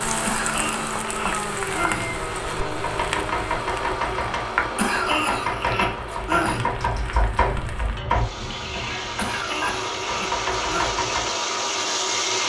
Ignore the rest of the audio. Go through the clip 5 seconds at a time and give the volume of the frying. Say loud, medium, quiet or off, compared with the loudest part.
loud, medium, loud.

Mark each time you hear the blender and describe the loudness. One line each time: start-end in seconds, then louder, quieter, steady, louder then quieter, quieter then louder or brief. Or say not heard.
0.0-12.4 quieter then louder.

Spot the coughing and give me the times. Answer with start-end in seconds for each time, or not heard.
0.2-2.1, 4.8-6.7, 9.2-10.9.